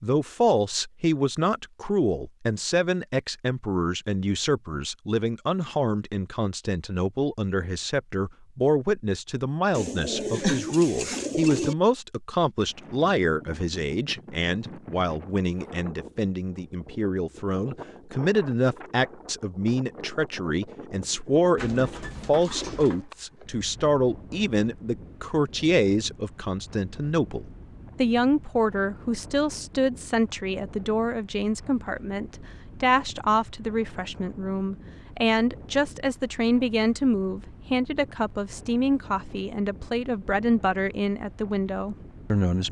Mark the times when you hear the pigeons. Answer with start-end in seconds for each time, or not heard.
9.7-11.8, 21.6-23.1.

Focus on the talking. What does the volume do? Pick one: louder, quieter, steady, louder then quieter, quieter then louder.
steady.